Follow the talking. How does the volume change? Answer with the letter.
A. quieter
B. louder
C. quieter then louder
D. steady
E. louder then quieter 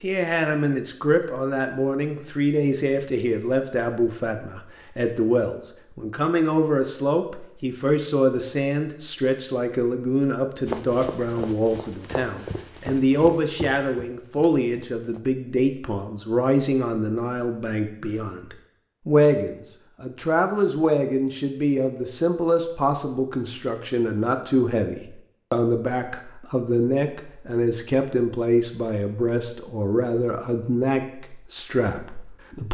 D.